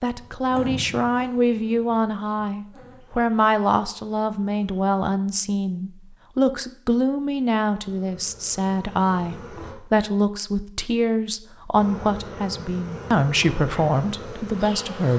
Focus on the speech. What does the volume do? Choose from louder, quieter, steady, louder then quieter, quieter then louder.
steady.